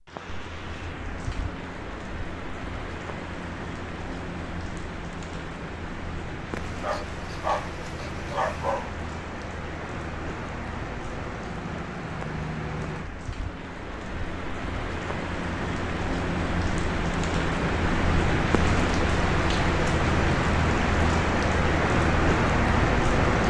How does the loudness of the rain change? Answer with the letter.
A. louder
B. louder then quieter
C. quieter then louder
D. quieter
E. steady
A.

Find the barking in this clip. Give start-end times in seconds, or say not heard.
6.5-8.9.